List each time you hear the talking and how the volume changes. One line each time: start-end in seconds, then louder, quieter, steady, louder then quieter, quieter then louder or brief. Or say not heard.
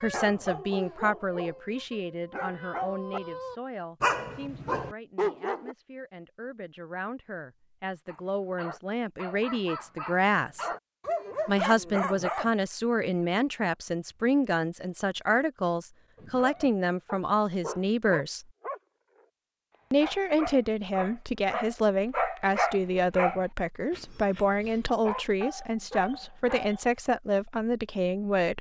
0.0-10.7 quieter then louder
11.4-18.4 steady
19.9-28.5 steady.